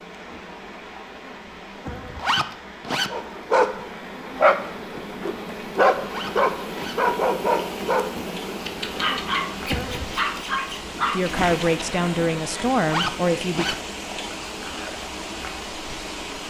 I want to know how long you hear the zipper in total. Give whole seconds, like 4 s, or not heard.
3 s.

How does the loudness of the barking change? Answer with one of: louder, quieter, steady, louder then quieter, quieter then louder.
quieter.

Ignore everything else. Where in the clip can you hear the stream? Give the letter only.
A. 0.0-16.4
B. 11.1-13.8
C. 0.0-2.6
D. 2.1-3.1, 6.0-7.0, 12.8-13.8
A.